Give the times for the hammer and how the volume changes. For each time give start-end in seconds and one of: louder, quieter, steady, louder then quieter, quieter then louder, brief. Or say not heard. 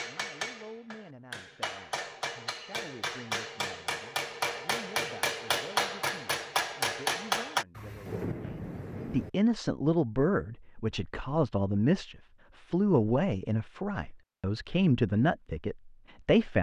0.0-7.7 louder.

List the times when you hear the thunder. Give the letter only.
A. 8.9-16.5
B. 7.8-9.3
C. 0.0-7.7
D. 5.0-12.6
B.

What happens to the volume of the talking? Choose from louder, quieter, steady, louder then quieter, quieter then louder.
louder.